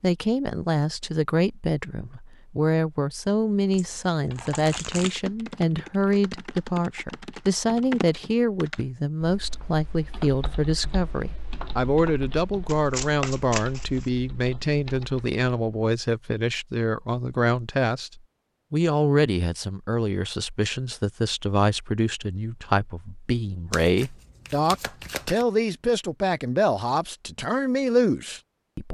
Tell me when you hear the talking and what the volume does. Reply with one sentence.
You can hear the talking from 0.0 to 28.8 s, at a steady volume.